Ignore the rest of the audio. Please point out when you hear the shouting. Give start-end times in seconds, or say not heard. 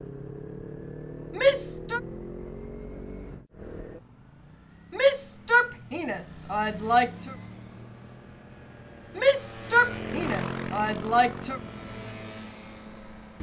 1.4-2.0, 4.9-7.3, 9.2-11.6.